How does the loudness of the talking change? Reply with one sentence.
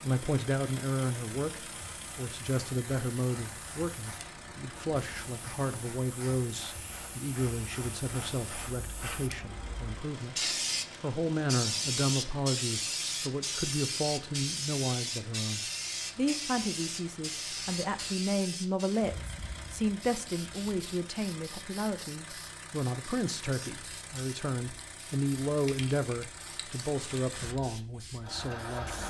The loudness of the talking stays about the same.